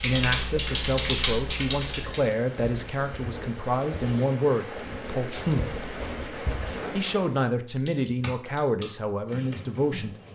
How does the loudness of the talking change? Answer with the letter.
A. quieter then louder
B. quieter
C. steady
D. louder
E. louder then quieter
C.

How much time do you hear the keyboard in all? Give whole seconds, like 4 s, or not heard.
5 s.